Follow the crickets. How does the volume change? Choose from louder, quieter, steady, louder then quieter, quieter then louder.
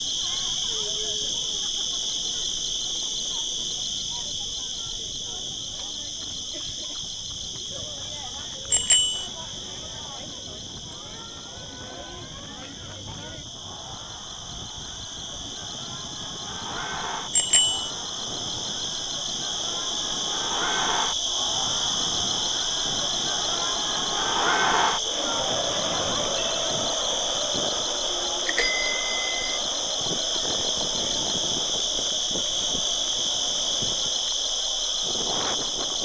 quieter then louder.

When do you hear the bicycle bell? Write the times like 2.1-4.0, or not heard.
8.7-9.2, 17.3-17.9, 28.4-29.4.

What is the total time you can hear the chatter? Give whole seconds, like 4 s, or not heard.
36 s.